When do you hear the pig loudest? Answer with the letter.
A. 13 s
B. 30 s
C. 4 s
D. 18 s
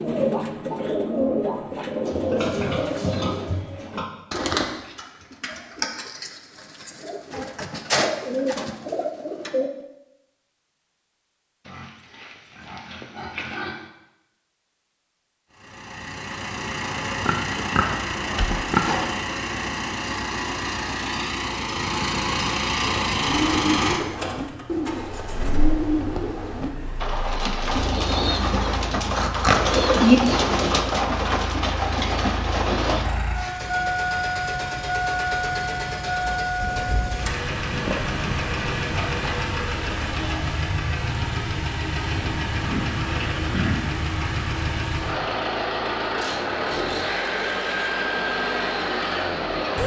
B.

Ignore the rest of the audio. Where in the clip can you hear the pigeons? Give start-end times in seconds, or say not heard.
0.0-9.7, 22.8-33.1.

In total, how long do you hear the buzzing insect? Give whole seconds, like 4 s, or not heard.
not heard.